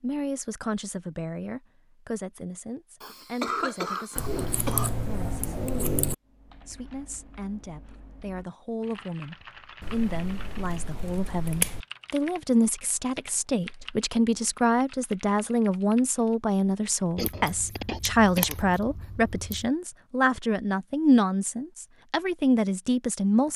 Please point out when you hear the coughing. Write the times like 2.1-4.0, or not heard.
3.0-4.9, 17.1-18.7.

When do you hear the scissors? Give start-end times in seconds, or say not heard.
4.2-6.2, 9.8-11.8, 17.1-19.7.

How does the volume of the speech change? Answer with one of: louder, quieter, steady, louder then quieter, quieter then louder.
louder.